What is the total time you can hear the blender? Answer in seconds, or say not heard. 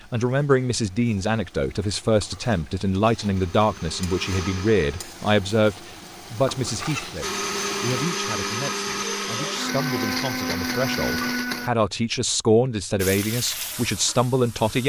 6 s.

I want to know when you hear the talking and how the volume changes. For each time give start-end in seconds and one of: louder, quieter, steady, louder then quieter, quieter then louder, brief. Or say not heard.
0.1-14.8 quieter then louder.